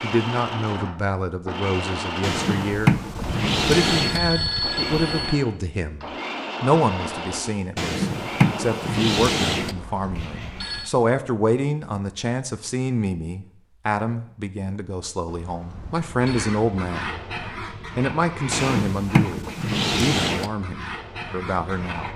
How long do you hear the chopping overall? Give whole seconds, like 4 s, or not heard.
not heard.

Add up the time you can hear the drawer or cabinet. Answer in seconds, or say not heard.
6 s.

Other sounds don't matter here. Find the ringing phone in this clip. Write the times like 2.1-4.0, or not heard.
2.8-5.5, 9.6-10.9, 15.2-16.6.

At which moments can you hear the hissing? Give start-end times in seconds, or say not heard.
16.2-22.1.